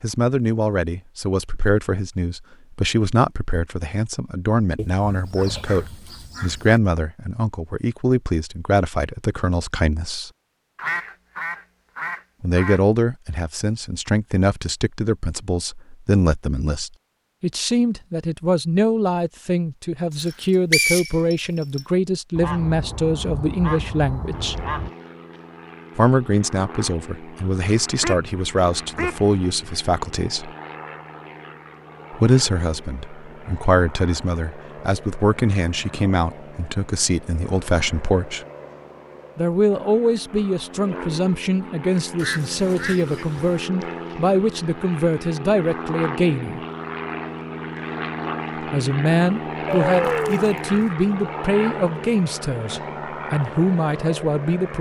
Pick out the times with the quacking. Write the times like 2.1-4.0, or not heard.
4.8-6.8, 10.8-12.8, 22.4-24.9, 28.0-29.3, 42.1-43.6, 49.6-50.9.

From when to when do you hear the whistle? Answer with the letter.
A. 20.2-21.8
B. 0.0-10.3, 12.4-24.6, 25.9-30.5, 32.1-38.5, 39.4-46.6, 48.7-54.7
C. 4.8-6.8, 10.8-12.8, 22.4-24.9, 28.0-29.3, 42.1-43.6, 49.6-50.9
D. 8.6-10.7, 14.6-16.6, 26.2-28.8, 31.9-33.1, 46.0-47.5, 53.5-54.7
A.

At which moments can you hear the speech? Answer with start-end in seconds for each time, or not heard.
0.0-10.3, 12.4-24.6, 25.9-30.5, 32.1-38.5, 39.4-46.6, 48.7-54.7.